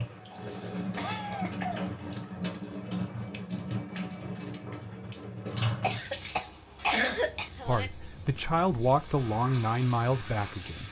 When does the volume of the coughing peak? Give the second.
7 s.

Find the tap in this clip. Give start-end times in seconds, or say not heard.
0.0-10.8.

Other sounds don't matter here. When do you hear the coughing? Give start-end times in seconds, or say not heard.
0.3-2.0, 5.8-7.9.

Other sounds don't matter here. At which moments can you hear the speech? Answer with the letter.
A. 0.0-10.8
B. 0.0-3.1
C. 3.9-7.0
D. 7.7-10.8
D.